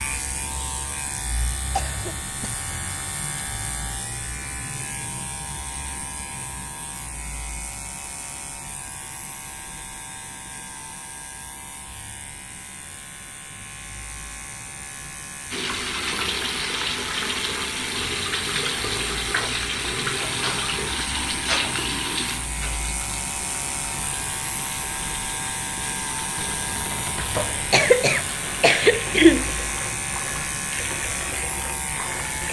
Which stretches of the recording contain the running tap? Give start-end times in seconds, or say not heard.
15.5-32.4.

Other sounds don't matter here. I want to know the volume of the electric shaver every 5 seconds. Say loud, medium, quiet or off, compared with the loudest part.
loud, medium, medium, medium, loud, loud, loud.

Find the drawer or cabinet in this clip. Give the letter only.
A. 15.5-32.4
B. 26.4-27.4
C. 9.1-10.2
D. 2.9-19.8
B.